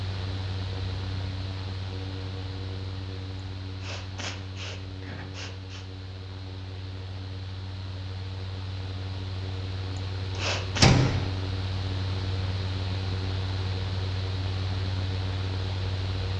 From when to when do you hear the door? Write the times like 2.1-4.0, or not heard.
10.3-11.3.